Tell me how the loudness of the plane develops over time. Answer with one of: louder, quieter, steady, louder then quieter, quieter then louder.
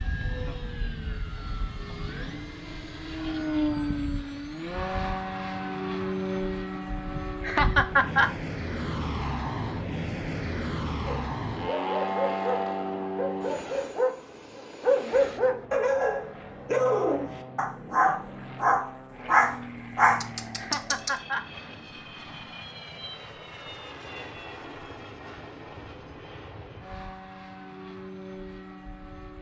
quieter.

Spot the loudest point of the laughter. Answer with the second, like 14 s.
8 s.